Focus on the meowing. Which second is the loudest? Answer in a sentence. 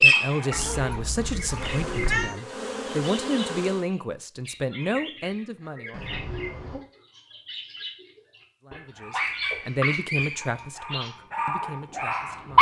The loudest moment of the meowing is at 2 seconds.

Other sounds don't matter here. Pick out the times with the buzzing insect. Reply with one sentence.
You can hear the buzzing insect from 1.4 to 3.9 s.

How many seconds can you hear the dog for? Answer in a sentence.
You can hear the dog for 5 seconds altogether.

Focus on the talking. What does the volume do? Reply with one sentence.
The volume of the talking goes down.